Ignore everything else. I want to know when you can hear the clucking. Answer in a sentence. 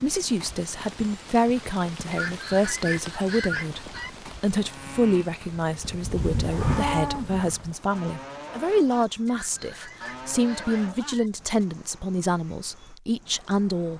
The clucking can be heard from 2.1 to 4.1 s and from 9.2 to 11.3 s.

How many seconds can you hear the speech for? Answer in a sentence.
You can hear the speech for 14 seconds altogether.